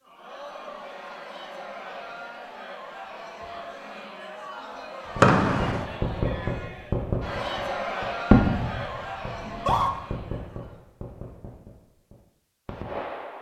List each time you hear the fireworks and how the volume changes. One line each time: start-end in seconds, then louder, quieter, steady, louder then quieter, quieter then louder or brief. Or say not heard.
5.0-13.3 louder then quieter.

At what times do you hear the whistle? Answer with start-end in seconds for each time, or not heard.
5.2-5.8.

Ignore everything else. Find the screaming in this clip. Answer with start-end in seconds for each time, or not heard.
9.4-9.9.